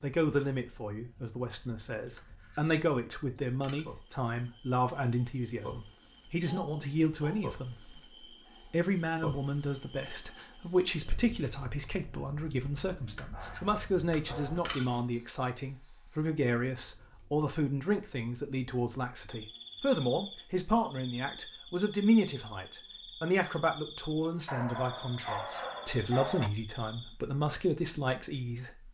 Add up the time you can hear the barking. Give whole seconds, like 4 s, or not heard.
5 s.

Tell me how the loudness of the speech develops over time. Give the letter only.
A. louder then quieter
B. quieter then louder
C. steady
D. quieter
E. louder
C.